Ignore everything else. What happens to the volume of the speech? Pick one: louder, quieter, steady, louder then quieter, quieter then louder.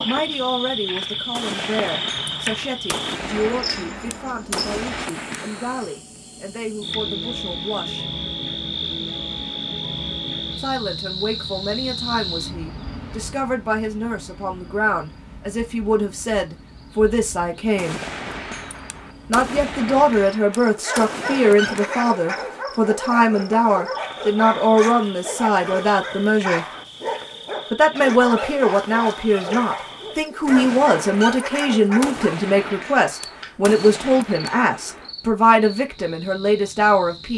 louder.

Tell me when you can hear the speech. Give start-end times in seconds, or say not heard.
0.1-8.1, 10.6-18.0, 19.3-26.6, 27.7-37.3.